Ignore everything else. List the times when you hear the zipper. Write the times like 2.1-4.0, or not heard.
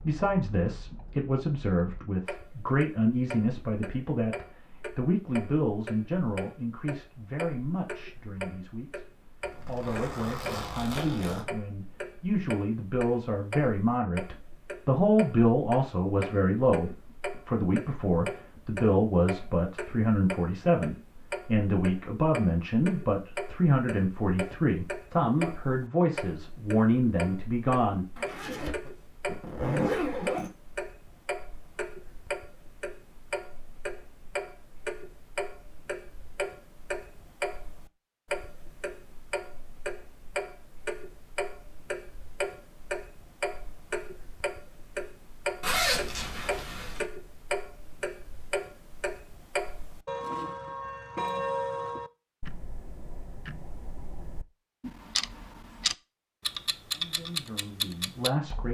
9.4-11.4, 28.1-30.5, 45.6-47.0.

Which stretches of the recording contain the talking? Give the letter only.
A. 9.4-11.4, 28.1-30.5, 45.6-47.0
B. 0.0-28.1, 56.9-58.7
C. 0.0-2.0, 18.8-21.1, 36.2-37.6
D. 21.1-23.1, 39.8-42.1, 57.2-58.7
B.